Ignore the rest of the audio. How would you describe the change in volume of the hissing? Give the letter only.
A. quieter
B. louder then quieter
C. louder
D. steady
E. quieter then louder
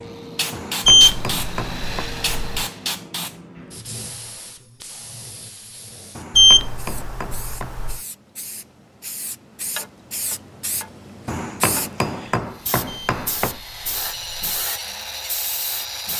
E.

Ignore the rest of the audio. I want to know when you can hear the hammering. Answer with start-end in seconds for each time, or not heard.
0.5-2.0, 6.2-7.8, 11.2-13.6.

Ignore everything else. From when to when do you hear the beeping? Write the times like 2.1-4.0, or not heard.
0.8-2.6, 6.3-8.0, 12.8-14.6.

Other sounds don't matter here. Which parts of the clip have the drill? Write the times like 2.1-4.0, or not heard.
0.0-3.0, 12.4-16.1.